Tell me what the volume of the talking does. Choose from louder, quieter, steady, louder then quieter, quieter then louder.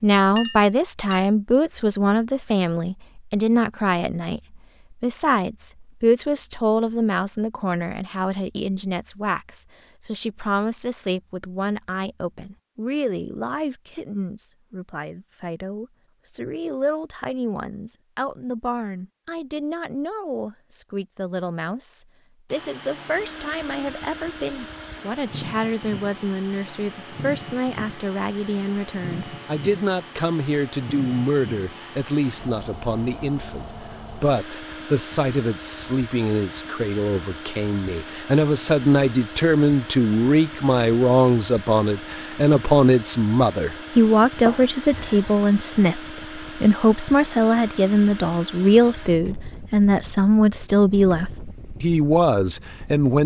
quieter then louder.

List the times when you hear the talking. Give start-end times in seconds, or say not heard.
0.0-53.2.